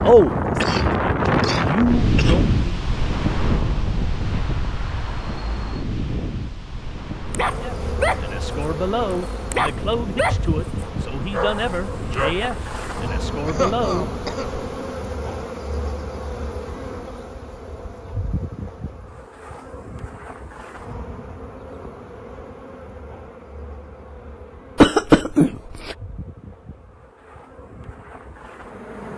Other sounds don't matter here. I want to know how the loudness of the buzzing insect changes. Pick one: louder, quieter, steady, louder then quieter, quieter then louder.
quieter.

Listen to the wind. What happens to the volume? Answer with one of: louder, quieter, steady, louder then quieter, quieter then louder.
quieter.